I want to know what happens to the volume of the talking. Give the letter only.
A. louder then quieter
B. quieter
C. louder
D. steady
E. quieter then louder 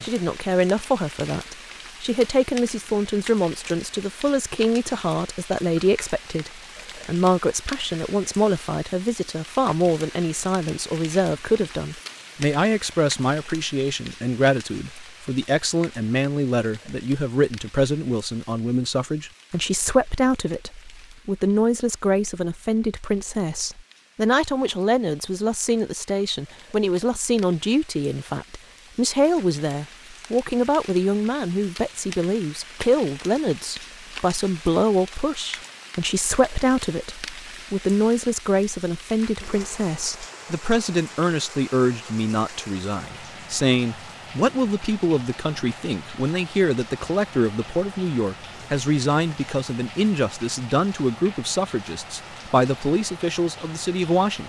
D.